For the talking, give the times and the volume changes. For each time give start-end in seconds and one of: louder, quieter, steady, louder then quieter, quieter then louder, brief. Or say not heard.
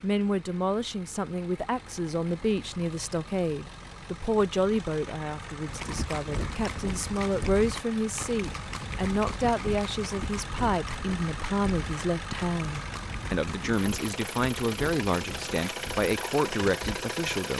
0.0-17.5 steady.